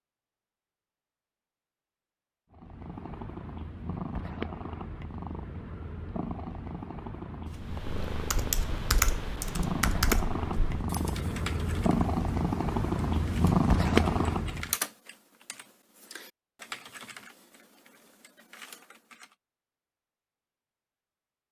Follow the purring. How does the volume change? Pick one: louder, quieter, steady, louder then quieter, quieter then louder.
louder.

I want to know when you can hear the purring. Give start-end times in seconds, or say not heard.
2.5-14.8.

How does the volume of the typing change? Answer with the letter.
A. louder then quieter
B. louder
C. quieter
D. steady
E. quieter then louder
C.